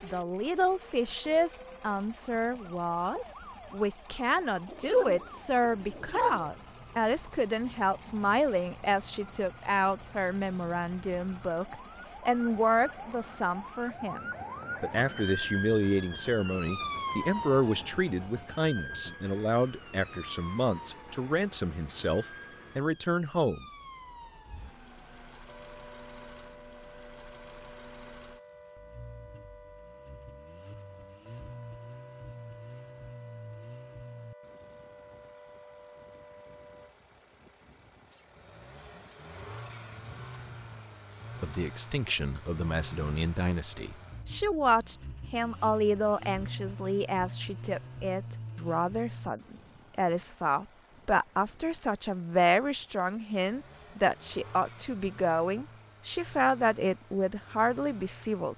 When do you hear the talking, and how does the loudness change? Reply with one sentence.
You can hear the talking from 0.0 to 23.6 s, at a steady volume; and from 41.4 to 58.5 s, at a steady volume.